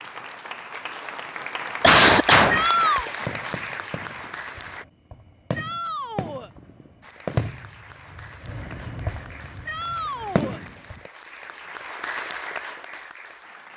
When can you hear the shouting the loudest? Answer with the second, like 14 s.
3 s.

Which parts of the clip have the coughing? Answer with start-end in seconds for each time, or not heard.
1.8-2.6.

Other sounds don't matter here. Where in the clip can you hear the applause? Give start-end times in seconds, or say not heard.
0.0-4.8, 7.0-13.7.